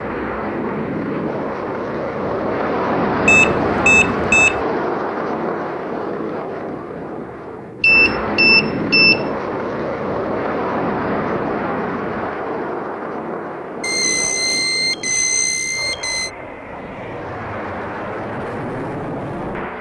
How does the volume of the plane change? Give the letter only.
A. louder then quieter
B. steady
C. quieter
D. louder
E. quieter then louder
C.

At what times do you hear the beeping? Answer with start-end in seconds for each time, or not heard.
3.2-4.6, 7.8-9.3, 13.8-16.3.